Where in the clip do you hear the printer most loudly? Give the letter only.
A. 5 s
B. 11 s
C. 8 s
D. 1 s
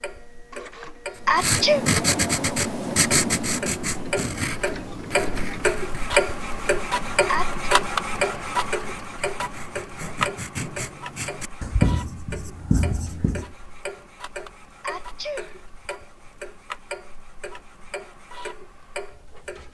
C.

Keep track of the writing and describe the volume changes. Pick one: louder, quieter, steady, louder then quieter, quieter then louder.
quieter then louder.